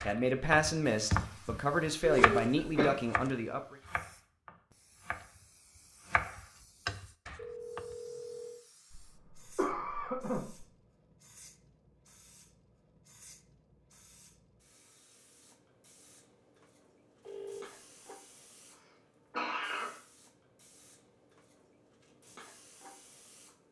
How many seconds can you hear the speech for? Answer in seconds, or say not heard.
4 s.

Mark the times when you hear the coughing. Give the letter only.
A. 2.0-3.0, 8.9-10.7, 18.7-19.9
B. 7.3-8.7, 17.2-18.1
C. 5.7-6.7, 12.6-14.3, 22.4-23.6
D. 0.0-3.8
A.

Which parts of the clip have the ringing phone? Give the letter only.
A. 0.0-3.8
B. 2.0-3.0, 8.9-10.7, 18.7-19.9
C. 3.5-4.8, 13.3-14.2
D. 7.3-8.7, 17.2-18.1
D.